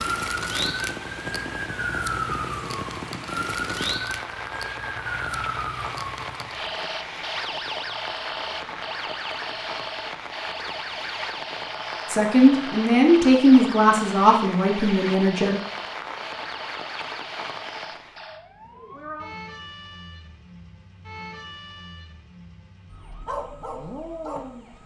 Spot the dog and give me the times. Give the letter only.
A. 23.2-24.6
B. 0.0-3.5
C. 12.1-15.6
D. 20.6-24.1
A.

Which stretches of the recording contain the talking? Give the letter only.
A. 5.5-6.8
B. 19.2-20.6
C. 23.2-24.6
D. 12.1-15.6
D.